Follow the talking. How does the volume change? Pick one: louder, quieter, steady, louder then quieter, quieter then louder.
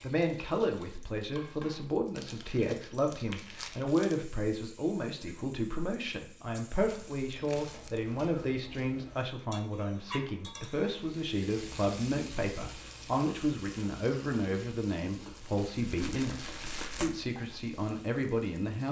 steady.